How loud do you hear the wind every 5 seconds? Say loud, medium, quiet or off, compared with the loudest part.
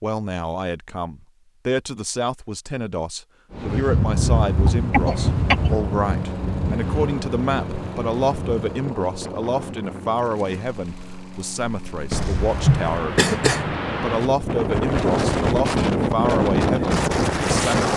loud, medium, medium, loud.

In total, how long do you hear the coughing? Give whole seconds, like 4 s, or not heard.
3 s.